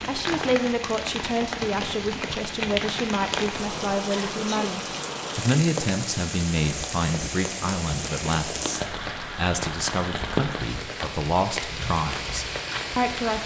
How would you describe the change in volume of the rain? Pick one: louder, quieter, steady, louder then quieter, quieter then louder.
steady.